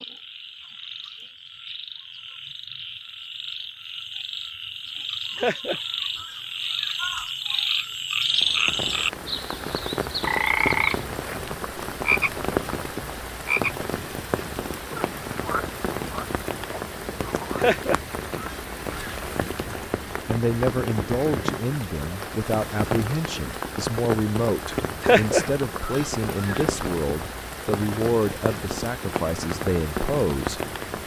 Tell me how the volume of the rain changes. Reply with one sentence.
The volume of the rain stays about the same.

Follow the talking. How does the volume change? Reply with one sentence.
The volume of the talking stays about the same.